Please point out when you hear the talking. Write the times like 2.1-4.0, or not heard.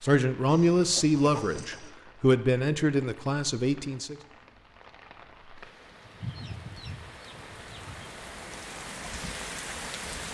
0.0-4.2.